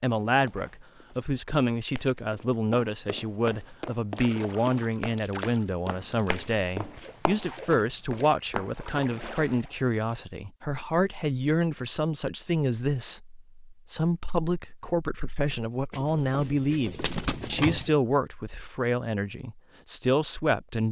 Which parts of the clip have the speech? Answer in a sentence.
You can hear the speech from 0.0 to 20.8 s.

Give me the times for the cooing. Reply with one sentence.
You can hear the cooing from 15.9 to 17.9 s.